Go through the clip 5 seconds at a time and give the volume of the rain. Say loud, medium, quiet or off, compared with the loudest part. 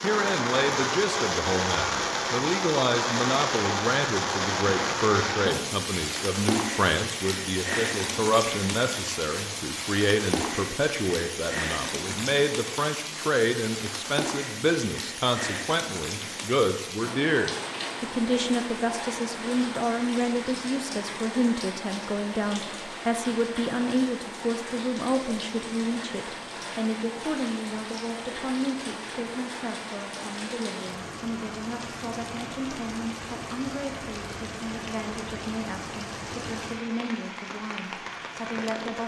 loud, loud, medium, medium, medium, medium, medium, medium.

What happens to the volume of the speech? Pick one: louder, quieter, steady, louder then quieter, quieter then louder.
quieter.